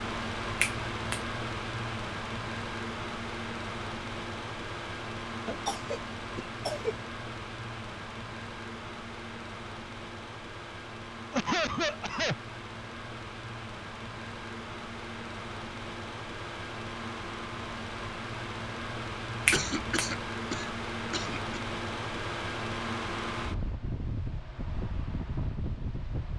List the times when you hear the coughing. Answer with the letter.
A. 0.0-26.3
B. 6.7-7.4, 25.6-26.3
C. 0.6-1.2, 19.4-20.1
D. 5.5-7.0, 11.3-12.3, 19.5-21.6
D.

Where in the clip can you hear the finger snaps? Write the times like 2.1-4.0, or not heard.
0.6-1.2, 19.4-20.1.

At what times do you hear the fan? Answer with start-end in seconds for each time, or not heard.
0.0-26.3.